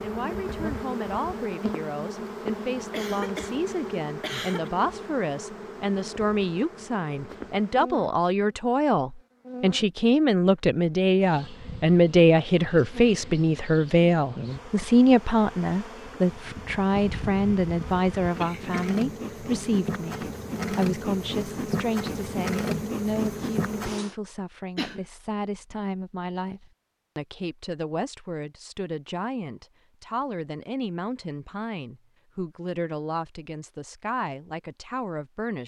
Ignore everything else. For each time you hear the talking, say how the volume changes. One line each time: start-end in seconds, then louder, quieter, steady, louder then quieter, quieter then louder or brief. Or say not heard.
0.0-35.6 louder then quieter.